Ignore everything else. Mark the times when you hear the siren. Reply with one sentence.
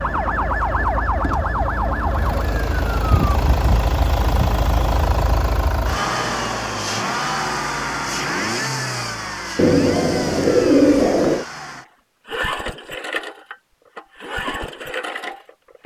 The siren can be heard from 0.0 to 3.1 s.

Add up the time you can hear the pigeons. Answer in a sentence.
You can hear the pigeons for 2 seconds altogether.